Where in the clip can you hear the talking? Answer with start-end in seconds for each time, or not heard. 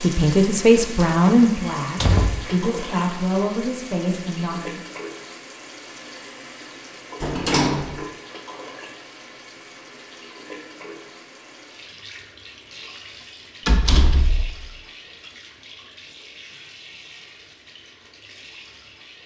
0.0-4.8.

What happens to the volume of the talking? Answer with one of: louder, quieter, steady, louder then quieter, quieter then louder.
quieter.